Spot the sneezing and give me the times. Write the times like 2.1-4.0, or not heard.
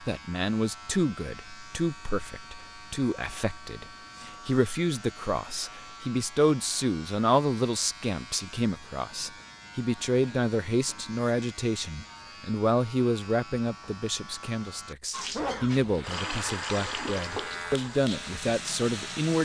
15.3-16.5.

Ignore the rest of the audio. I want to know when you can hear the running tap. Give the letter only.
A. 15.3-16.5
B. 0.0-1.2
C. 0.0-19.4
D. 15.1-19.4
D.